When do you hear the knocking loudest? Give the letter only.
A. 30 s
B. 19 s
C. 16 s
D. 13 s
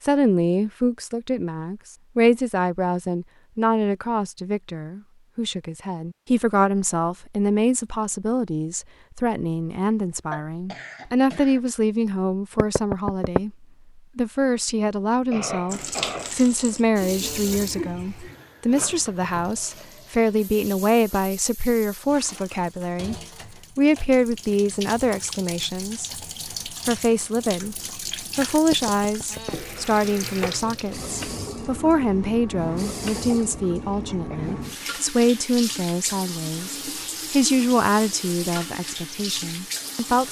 D.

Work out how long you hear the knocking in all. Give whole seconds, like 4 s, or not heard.
2 s.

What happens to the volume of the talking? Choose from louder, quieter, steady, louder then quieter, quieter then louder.
steady.